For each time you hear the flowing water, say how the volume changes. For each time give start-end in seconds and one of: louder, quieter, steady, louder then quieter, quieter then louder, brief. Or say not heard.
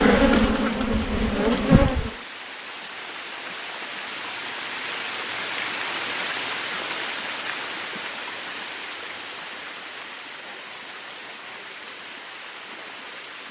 0.0-13.4 louder then quieter.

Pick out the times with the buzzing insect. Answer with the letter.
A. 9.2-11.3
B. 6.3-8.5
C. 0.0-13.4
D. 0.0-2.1
D.